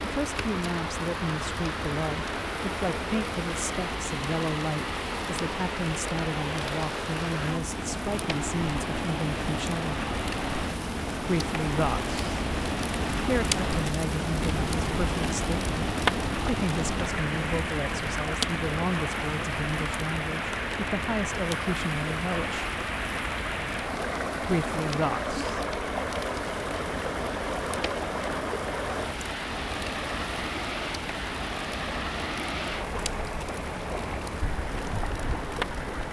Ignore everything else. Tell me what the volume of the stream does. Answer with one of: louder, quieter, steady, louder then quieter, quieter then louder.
steady.